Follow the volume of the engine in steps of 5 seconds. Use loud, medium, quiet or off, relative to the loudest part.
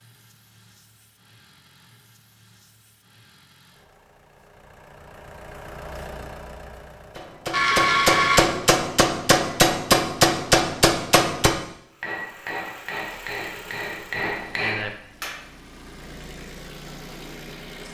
quiet, loud, loud, loud.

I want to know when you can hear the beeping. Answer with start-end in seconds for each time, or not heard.
7.5-8.4.